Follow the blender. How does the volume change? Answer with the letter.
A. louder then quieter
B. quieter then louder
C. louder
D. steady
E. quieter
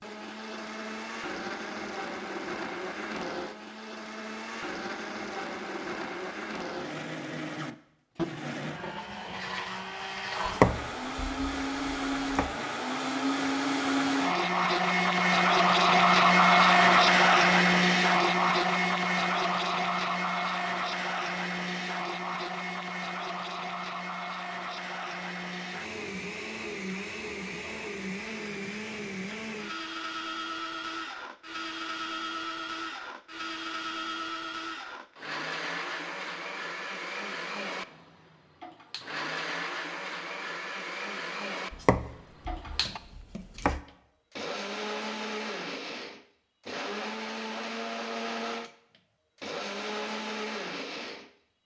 A.